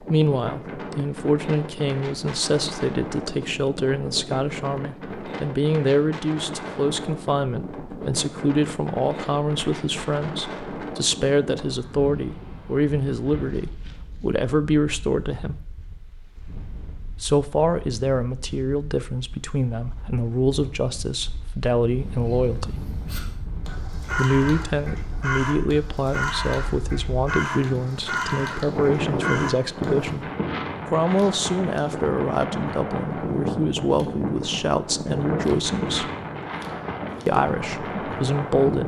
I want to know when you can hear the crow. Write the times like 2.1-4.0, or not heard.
21.9-30.1.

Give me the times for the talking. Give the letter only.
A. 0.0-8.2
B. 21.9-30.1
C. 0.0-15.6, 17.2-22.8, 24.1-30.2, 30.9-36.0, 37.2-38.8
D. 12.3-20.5
C.